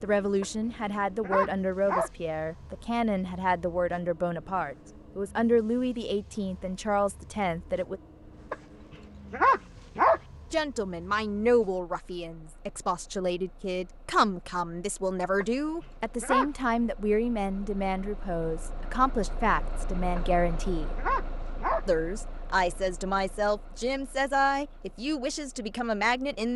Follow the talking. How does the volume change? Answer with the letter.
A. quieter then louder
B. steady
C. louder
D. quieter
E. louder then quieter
B.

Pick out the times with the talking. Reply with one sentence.
The talking can be heard from 0.0 to 8.0 s, from 10.5 to 20.9 s and from 21.9 to 26.5 s.